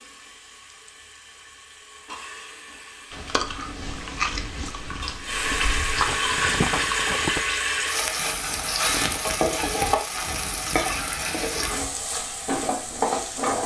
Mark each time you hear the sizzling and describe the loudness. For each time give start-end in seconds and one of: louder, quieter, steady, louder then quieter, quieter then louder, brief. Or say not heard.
0.0-13.6 louder.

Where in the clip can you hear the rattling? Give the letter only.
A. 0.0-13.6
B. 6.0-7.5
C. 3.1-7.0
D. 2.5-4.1
B.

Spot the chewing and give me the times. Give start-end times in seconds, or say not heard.
3.1-7.0.